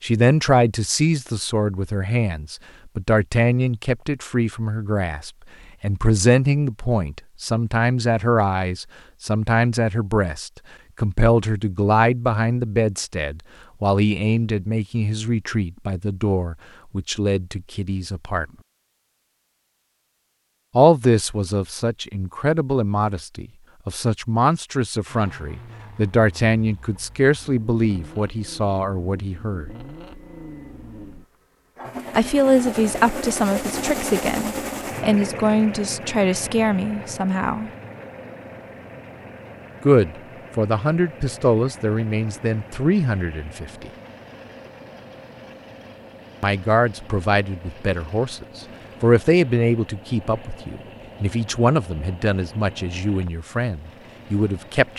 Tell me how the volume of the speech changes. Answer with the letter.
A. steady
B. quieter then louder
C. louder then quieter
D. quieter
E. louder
A.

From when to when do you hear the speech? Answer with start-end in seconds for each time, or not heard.
0.0-18.4, 20.8-29.7, 32.1-37.7, 39.8-43.9, 46.4-54.9.